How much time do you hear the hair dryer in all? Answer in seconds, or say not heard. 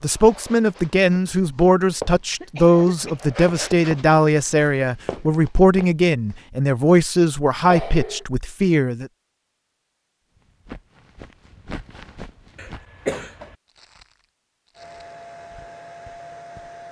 2 s.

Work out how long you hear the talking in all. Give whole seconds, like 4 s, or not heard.
9 s.